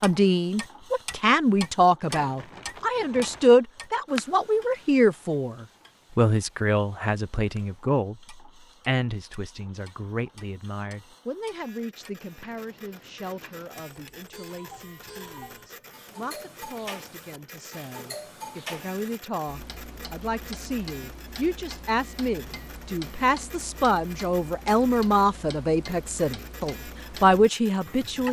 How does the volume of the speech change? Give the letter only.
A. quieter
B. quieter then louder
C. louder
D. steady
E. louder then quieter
B.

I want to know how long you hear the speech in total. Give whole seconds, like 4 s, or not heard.
28 s.